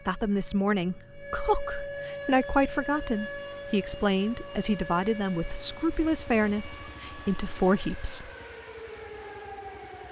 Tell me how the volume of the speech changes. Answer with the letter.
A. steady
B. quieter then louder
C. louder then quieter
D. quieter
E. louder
A.